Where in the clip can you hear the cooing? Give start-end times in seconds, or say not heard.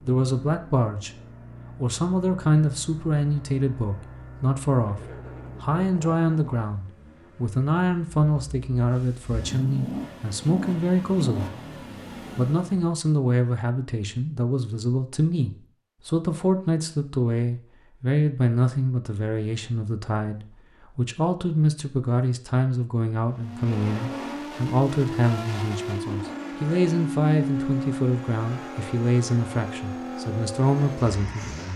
not heard.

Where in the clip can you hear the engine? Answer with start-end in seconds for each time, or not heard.
0.0-12.9, 23.3-31.7.